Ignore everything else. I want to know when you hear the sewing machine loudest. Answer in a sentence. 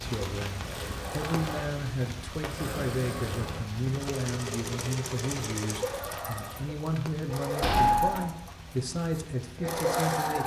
The loudest moment of the sewing machine is at 8 seconds.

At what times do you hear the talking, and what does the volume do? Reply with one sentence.
You can hear the talking from 0.0 to 10.4 s, at a steady volume.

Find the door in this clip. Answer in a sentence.
The door can be heard from 7.6 to 8.2 s.